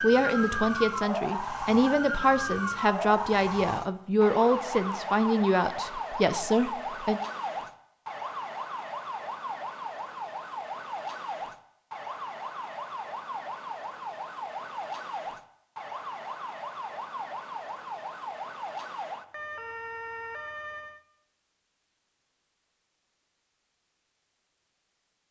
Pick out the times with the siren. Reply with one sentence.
The siren can be heard from 0.0 to 21.0 s.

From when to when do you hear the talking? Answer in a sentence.
You can hear the talking from 0.0 to 7.2 s.